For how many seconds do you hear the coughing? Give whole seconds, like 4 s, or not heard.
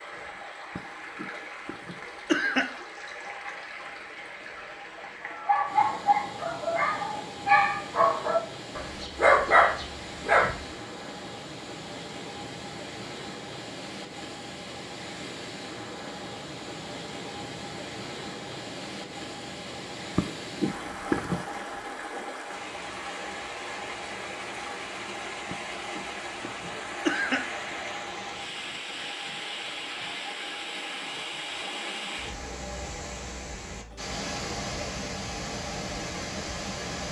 5 s.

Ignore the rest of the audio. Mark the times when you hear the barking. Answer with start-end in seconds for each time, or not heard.
5.2-10.7.